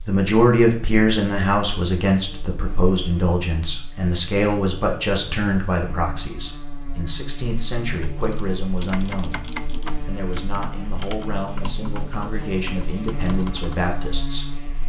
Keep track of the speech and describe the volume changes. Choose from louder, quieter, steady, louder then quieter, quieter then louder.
quieter.